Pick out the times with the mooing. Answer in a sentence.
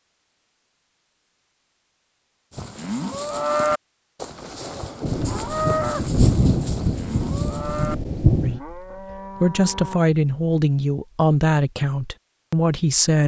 You can hear the mooing from 2.5 to 10.1 s.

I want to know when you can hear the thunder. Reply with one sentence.
You can hear the thunder from 5.0 to 8.6 s.